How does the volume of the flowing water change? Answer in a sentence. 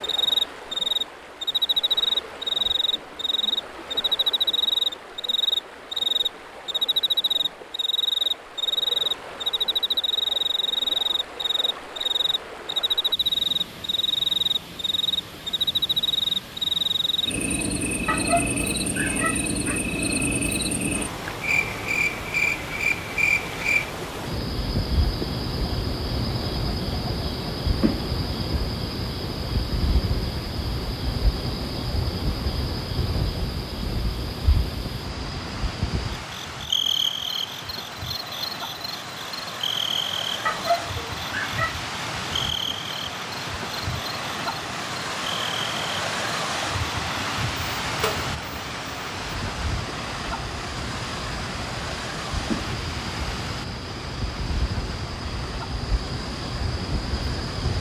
The loudness of the flowing water goes up.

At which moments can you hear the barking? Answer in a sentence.
You can hear the barking from 18.1 to 19.8 s and from 40.5 to 41.8 s.